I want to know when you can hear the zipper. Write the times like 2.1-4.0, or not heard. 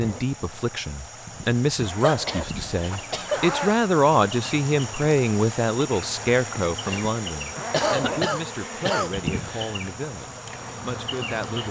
1.8-3.8, 7.5-8.2.